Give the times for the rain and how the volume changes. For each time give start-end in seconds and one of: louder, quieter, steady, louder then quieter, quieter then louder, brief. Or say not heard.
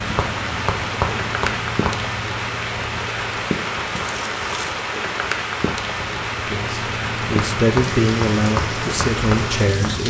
0.0-10.0 steady.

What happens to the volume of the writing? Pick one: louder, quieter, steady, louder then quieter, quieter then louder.
quieter then louder.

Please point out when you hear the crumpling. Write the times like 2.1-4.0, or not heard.
4.0-4.8.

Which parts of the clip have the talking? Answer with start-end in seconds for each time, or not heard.
6.5-10.0.